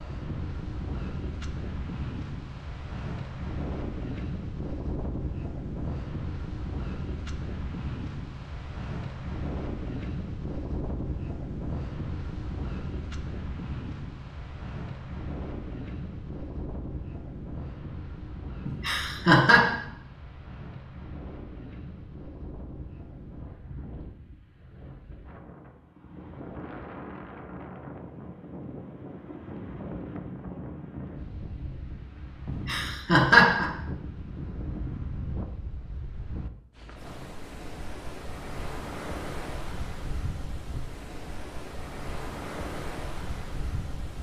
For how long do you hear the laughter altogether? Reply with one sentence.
You can hear the laughter for 2 seconds altogether.